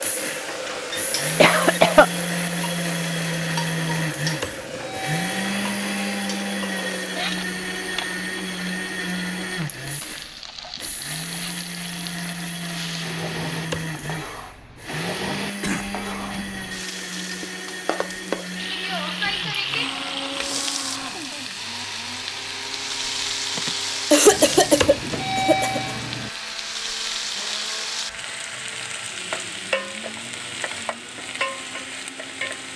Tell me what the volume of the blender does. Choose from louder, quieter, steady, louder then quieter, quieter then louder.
quieter.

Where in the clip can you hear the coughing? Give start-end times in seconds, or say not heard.
0.7-2.0, 15.6-16.4, 23.6-25.9.